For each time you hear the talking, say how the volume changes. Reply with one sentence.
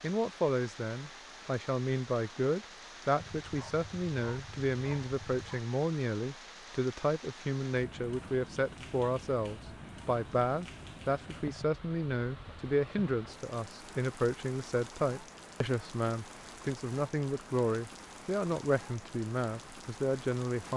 You can hear the talking from 0.0 to 20.7 s, at a steady volume.